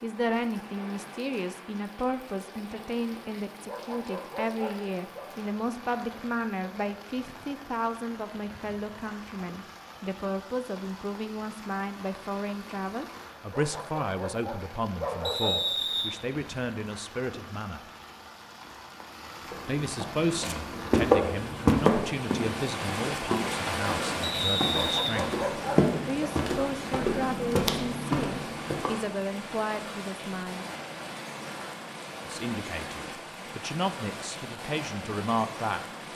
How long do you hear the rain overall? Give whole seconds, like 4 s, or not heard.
36 s.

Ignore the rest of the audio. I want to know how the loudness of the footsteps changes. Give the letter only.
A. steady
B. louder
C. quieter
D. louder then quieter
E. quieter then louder
E.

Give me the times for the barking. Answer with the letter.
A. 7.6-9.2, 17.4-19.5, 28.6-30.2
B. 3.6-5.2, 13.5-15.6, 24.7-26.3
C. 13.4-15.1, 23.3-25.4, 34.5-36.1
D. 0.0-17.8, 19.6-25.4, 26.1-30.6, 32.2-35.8
B.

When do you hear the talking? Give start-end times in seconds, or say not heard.
0.0-17.8, 19.6-25.4, 26.1-30.6, 32.2-35.8.